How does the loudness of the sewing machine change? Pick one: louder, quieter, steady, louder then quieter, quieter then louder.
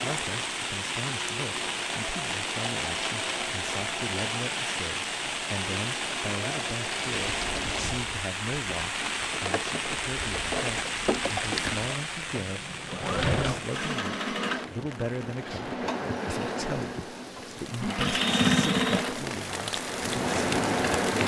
louder.